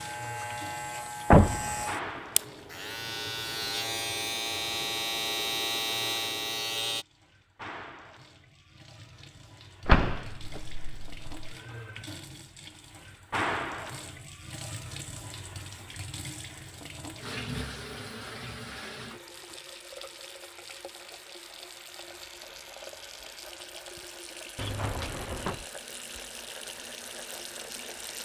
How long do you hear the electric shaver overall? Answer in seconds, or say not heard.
7 s.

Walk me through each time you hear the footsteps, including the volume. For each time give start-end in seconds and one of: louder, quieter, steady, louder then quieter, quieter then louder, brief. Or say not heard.
not heard.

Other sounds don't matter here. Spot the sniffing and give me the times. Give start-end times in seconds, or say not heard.
not heard.